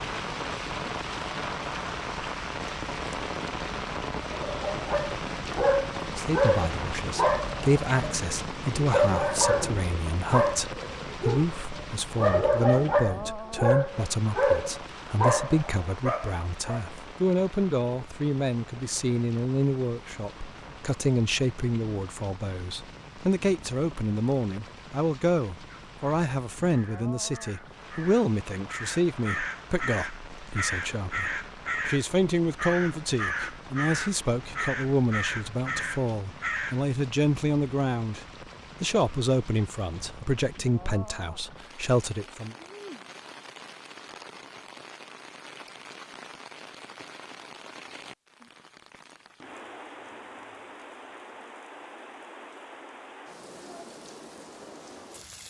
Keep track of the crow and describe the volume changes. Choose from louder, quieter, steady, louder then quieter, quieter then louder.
louder.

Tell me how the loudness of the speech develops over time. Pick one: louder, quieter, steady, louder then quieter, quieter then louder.
steady.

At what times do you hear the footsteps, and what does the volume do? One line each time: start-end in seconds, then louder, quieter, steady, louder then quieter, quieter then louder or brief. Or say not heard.
not heard.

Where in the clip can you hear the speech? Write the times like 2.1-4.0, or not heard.
6.0-42.5.